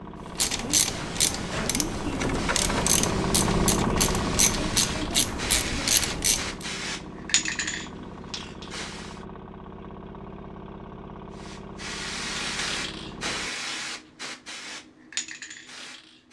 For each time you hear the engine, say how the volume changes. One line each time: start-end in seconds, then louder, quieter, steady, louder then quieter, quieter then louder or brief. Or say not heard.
0.0-13.5 louder then quieter.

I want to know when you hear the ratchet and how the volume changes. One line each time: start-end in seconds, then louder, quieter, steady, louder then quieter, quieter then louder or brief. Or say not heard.
0.2-6.7 steady.